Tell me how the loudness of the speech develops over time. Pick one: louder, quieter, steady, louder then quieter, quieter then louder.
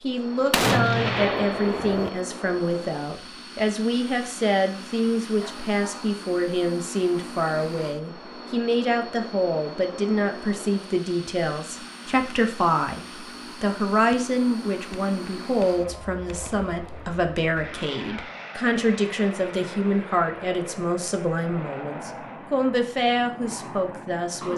steady.